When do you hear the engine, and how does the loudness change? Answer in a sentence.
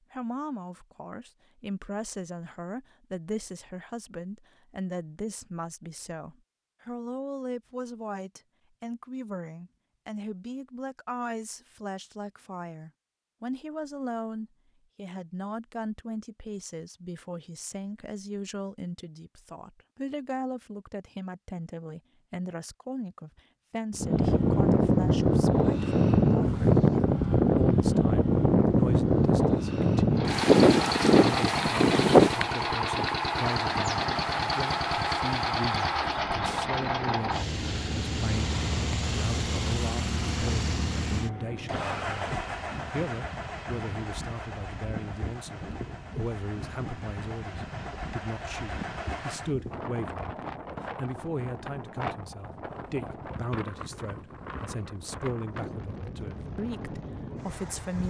You can hear the engine from 30.1 to 49.5 s, getting quieter.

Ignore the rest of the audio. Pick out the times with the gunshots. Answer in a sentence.
The gunshots can't be heard in this clip.